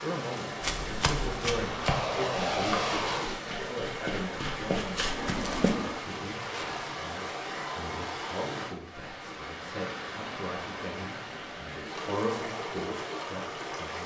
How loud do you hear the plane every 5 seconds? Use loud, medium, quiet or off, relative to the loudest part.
loud, medium, off.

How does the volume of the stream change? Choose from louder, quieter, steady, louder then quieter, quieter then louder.
steady.